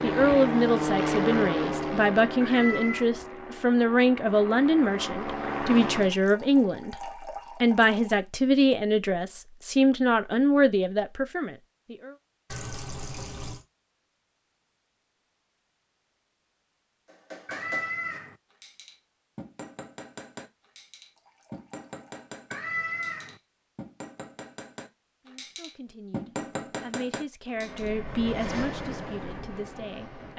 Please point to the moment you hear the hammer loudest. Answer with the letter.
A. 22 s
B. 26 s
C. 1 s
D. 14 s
B.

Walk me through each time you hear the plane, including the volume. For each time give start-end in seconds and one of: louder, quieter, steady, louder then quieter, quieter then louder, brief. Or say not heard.
0.0-6.2 quieter then louder
27.4-30.3 brief.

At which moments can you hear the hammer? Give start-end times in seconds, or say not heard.
17.1-27.9.